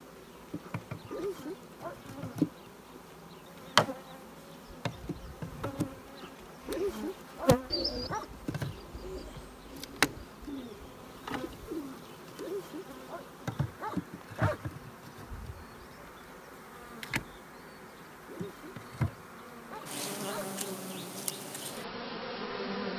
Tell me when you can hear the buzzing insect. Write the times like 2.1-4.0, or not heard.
0.0-22.9.